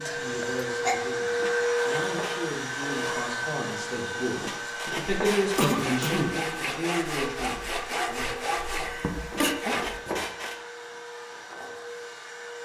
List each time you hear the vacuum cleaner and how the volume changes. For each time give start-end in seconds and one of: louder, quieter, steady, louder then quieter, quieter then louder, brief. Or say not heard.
0.0-12.6 quieter.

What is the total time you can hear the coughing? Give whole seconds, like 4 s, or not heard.
3 s.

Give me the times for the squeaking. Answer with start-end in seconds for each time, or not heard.
1.4-2.4, 4.4-5.7, 9.3-10.6.